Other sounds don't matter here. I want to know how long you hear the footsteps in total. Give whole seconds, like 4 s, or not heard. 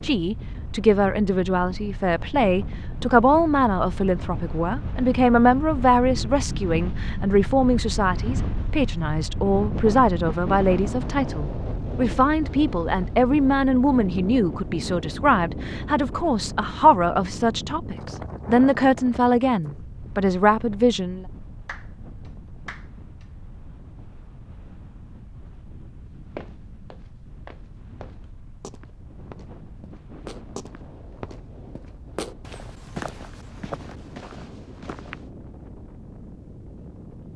9 s.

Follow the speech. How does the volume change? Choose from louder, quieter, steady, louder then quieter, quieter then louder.
steady.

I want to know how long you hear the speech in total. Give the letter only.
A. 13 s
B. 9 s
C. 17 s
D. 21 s
D.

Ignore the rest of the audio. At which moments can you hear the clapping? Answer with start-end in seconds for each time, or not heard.
21.6-23.2.